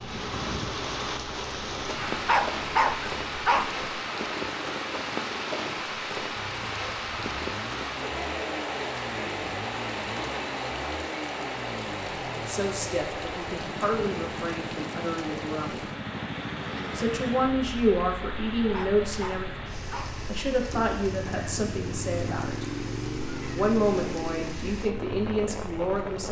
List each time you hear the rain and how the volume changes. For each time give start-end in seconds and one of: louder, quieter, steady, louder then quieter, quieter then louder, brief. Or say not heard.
0.0-26.2 quieter.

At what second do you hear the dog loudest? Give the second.
3 s.